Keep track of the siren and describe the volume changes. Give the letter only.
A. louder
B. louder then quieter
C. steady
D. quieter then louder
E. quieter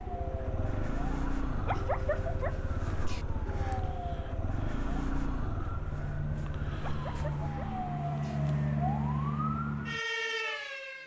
A.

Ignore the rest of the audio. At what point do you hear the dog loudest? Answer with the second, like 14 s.
2 s.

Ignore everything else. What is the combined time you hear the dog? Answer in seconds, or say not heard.
3 s.